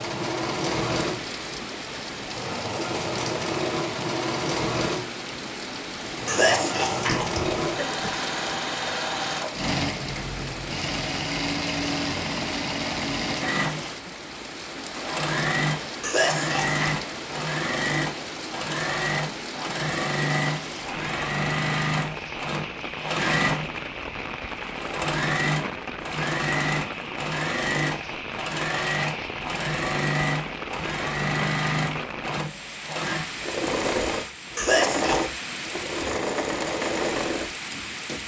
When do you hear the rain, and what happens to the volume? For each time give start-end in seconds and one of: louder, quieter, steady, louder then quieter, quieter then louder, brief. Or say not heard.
0.0-38.2 steady.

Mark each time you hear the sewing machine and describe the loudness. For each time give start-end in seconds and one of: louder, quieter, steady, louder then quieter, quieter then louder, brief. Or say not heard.
0.0-38.2 steady.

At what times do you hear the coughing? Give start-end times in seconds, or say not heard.
6.2-8.2, 16.0-17.0, 34.5-35.2.